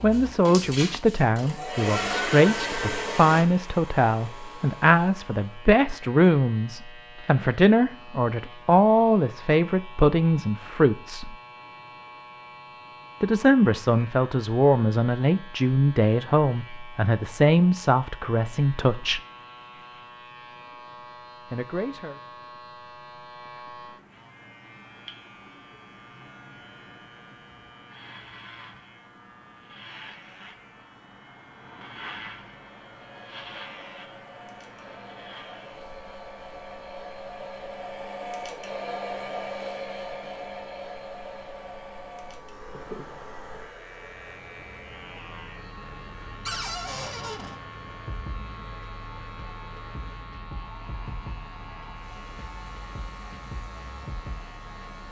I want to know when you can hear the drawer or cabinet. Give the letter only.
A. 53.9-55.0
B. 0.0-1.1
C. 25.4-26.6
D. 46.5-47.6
D.